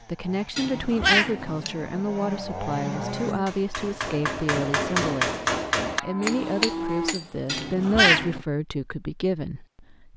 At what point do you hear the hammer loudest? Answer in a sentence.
The loudest moment of the hammer is at 5 seconds.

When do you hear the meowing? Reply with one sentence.
The meowing can be heard from 0.6 to 1.7 s and from 7.5 to 8.4 s.